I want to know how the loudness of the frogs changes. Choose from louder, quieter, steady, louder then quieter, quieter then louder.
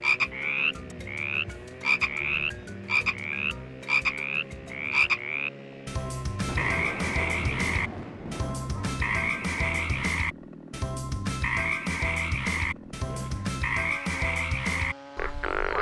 steady.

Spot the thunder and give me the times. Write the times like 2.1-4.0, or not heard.
6.5-10.1.